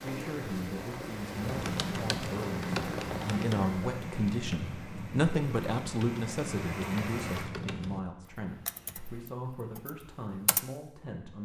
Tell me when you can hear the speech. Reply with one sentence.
You can hear the speech from 0.0 to 11.3 s.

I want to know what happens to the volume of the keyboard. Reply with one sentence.
The loudness of the keyboard goes down.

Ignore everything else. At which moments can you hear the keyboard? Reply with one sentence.
You can hear the keyboard from 1.4 to 10.7 s.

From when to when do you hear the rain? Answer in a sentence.
You can hear the rain from 0.0 to 7.5 s.